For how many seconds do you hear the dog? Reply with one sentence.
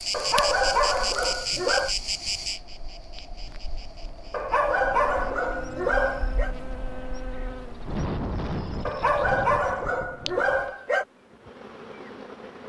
You can hear the dog for 6 seconds altogether.